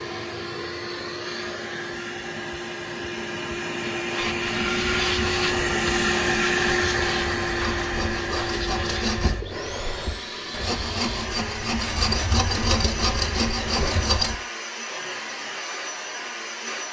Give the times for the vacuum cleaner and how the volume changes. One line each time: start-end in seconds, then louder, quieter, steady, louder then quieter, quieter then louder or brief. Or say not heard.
0.0-16.8 louder then quieter.